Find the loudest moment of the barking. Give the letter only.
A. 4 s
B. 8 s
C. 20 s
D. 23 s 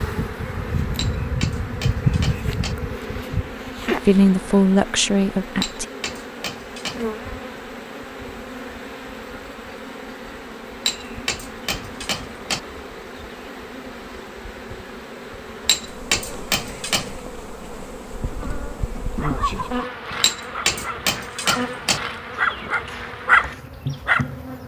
D.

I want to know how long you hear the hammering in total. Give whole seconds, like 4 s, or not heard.
8 s.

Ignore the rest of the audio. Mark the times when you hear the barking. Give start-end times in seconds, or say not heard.
19.1-19.9, 20.5-24.3.